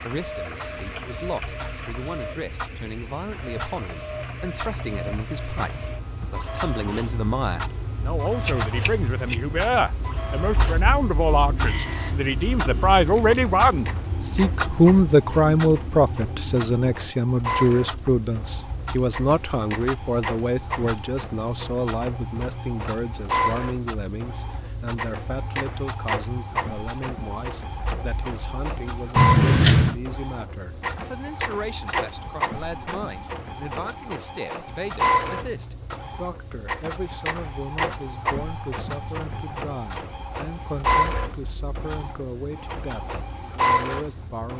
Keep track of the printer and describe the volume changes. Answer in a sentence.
The volume of the printer goes up.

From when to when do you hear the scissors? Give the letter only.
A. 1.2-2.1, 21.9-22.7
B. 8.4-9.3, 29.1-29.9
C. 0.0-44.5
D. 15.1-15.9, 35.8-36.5
B.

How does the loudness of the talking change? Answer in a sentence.
The loudness of the talking goes up, then down.